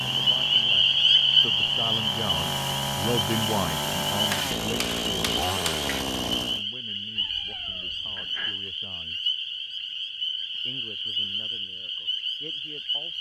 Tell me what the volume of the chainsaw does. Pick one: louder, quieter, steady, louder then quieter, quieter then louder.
louder.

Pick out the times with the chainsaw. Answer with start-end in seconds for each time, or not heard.
0.0-6.7.